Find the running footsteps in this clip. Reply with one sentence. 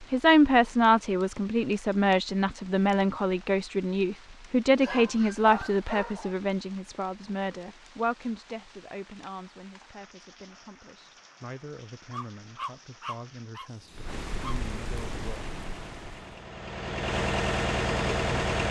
You can't hear the running footsteps here.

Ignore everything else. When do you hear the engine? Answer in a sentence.
You can hear the engine from 15.2 to 18.6 s.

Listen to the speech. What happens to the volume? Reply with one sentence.
The volume of the speech goes down.